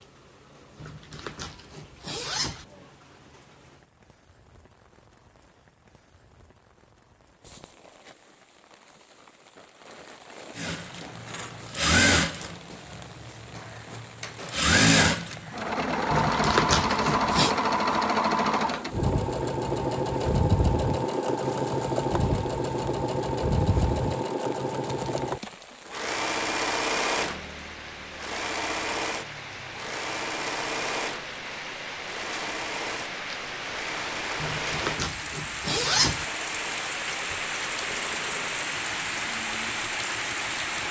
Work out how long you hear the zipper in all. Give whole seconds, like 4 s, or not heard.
5 s.